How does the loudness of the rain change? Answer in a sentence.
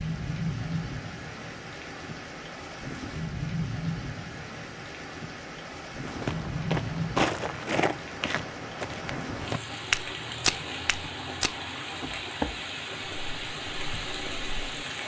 The volume of the rain stays about the same.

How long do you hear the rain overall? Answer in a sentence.
The rain can be heard for 15 seconds in total.